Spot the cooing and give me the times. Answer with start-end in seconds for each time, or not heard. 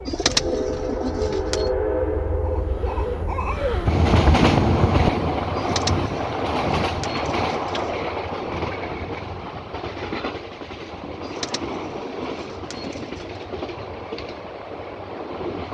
0.1-1.7, 5.5-8.1, 11.2-13.4.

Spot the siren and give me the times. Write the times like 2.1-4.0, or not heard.
not heard.